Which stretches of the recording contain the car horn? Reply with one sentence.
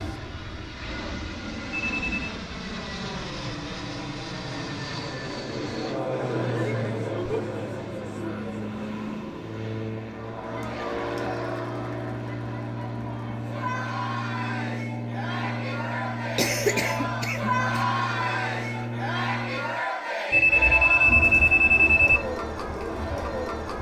You can't hear the car horn here.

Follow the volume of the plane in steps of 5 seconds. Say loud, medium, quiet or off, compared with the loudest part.
loud, loud, loud, loud, off.